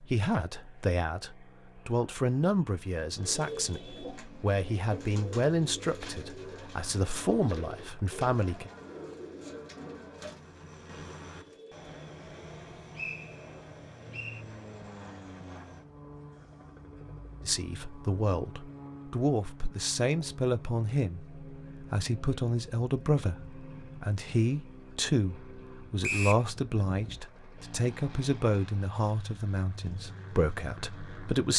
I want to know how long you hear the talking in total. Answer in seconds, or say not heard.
23 s.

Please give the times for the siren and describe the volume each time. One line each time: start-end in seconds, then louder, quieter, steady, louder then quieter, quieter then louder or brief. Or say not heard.
not heard.